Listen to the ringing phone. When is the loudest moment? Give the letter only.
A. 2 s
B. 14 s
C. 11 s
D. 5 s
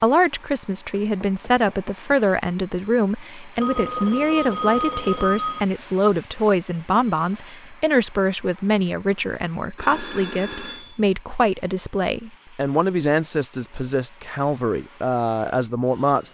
D.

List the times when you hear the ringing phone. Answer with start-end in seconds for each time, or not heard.
3.6-5.6, 9.8-10.9.